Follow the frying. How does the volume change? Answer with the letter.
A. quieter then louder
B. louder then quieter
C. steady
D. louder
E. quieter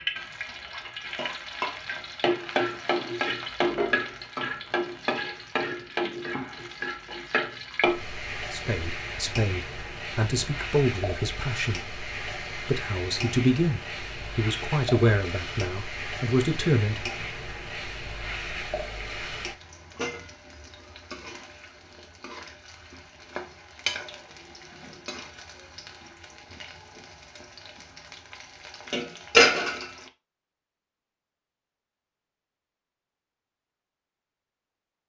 A.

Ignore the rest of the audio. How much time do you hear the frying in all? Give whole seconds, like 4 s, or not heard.
30 s.